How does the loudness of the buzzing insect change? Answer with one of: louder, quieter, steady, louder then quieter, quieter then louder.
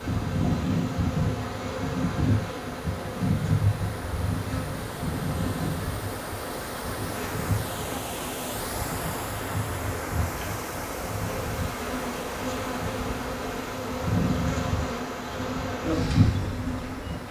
quieter then louder.